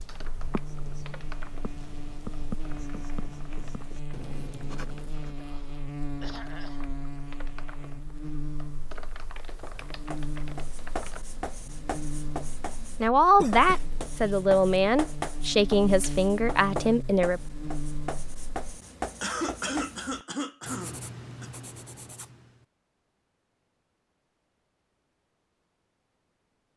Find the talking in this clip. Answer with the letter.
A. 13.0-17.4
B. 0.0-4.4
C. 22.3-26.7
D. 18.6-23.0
A.